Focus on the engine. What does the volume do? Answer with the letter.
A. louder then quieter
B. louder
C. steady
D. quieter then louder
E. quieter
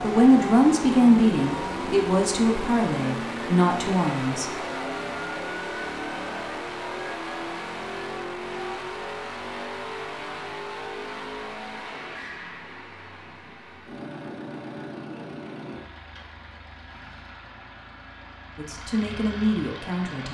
E.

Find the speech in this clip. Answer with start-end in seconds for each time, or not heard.
0.0-4.6, 18.6-20.2.